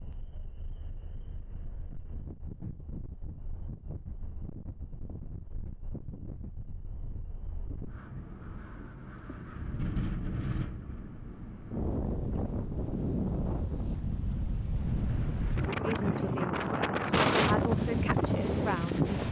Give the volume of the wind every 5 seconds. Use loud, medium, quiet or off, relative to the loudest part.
quiet, quiet, medium, loud.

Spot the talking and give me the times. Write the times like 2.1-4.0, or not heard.
15.8-19.2.